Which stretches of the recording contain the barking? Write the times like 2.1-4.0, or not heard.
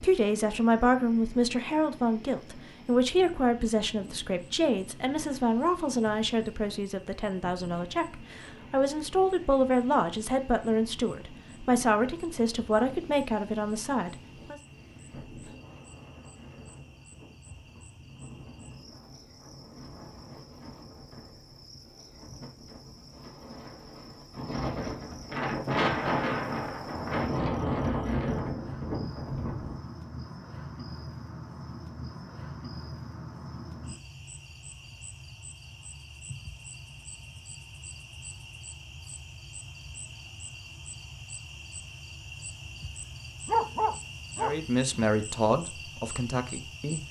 43.5-45.0.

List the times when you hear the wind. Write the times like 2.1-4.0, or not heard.
0.0-29.8.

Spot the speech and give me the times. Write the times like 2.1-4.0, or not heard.
0.0-14.6, 44.4-47.0.